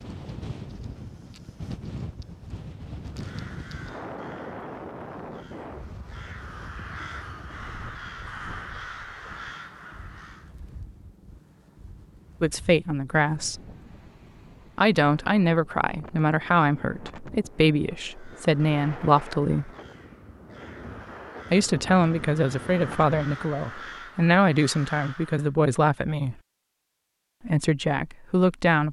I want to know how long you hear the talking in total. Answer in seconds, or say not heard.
12 s.